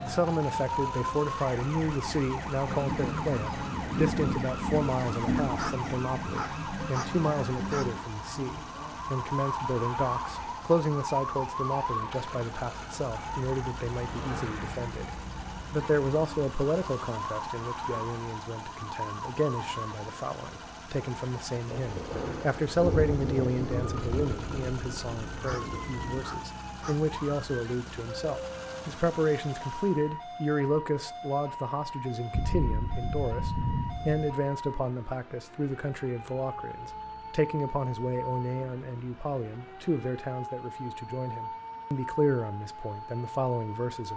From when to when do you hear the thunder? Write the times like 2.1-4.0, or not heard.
2.7-6.5, 21.7-26.3, 32.3-34.4.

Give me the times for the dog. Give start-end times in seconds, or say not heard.
5.5-7.9, 25.4-27.0.